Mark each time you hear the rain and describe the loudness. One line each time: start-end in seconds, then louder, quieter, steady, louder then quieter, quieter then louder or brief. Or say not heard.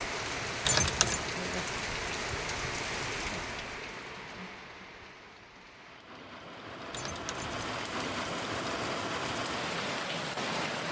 0.0-10.8 quieter then louder.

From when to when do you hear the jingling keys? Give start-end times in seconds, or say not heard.
0.7-1.2, 6.9-7.6.